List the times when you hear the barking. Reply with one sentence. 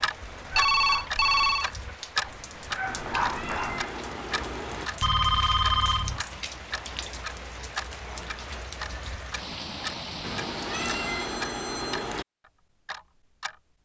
The barking can be heard from 0.0 to 3.9 s.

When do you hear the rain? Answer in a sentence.
You can hear the rain from 0.0 to 11.2 s.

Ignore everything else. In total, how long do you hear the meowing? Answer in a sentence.
The meowing can be heard for 4 seconds in total.